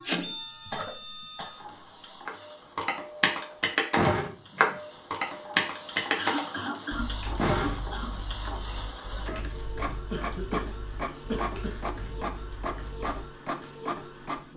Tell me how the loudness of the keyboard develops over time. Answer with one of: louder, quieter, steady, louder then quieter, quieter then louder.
quieter.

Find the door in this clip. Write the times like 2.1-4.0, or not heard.
4.0-4.8, 7.3-8.2.